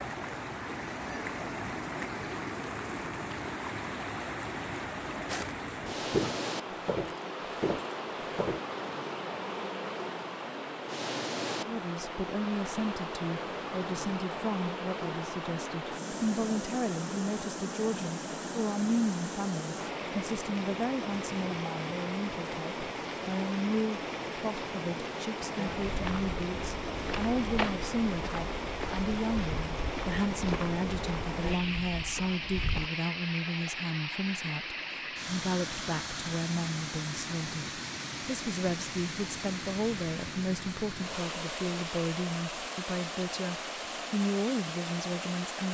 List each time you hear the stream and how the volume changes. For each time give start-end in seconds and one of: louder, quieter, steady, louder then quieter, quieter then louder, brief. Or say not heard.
0.0-45.6 steady.